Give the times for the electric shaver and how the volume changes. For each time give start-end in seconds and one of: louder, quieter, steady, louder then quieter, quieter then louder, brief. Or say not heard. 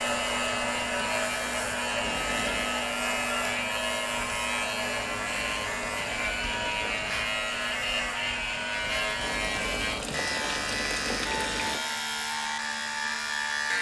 0.0-13.7 steady.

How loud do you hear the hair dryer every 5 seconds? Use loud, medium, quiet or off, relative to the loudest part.
loud, medium, medium.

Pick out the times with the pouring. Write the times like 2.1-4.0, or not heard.
2.0-2.8, 5.0-7.2, 9.2-11.8.